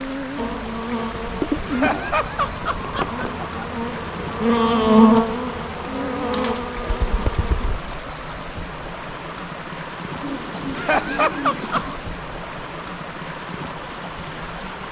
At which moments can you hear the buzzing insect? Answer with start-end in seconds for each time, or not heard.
0.0-7.7.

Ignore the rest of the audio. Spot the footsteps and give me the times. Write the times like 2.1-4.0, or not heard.
not heard.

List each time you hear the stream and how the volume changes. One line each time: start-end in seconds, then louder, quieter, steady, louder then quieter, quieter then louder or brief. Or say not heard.
0.0-14.8 steady.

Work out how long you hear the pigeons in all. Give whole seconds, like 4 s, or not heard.
5 s.